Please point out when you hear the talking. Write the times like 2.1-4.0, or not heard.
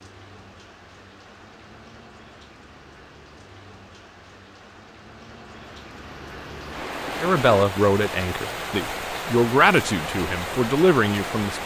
7.2-11.6.